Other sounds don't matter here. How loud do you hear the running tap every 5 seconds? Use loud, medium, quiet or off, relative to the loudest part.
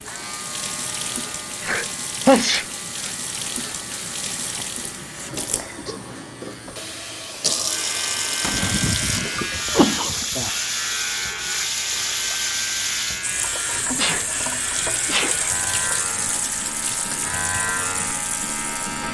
medium, loud, loud, loud.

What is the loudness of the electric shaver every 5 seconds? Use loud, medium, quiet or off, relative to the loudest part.
medium, loud, loud, loud.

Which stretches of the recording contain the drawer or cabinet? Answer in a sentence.
The drawer or cabinet can be heard from 8.4 to 9.0 s.